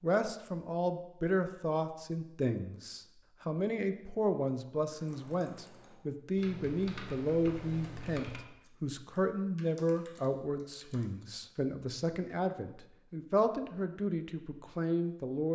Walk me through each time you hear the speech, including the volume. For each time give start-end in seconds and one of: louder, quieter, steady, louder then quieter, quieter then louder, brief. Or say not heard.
0.0-15.5 steady.